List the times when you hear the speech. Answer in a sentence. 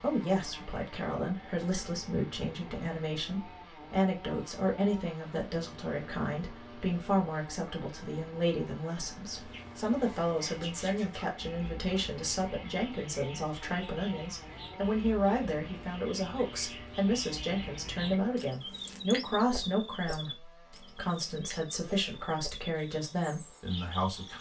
The speech can be heard from 0.0 to 24.3 s.